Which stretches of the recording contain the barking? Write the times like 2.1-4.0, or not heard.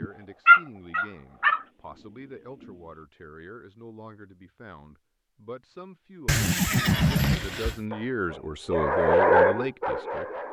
0.0-1.6, 6.8-10.4.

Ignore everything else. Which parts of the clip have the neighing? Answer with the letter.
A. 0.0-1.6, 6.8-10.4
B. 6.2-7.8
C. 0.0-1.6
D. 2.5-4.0
B.